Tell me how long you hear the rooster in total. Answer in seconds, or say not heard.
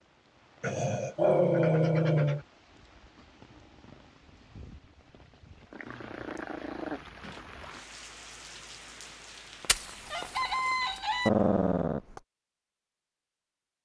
2 s.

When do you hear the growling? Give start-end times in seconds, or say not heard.
0.6-2.5, 5.7-7.5, 11.2-12.2.